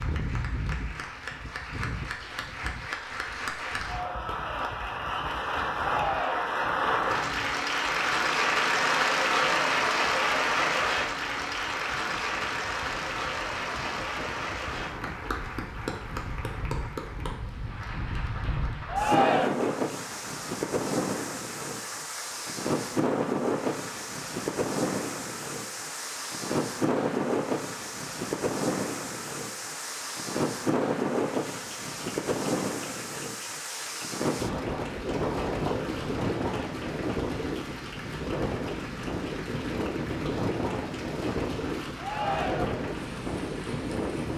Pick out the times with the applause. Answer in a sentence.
The applause can be heard from 0.0 to 44.3 s.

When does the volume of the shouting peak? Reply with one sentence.
The loudest moment of the shouting is at 19 seconds.